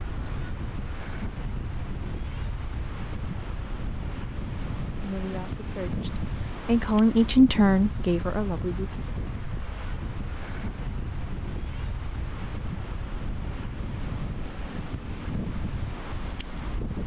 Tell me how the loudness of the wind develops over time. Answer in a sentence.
The volume of the wind stays about the same.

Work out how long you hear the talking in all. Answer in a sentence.
You can hear the talking for 4 seconds altogether.